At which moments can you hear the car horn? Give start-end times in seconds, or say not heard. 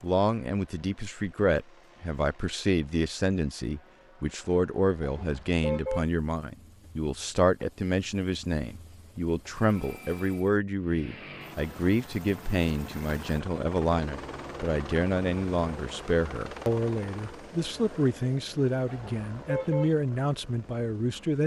5.0-6.0, 18.9-19.9.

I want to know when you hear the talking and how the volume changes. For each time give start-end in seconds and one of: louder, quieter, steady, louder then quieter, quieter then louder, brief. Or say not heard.
0.0-21.4 steady.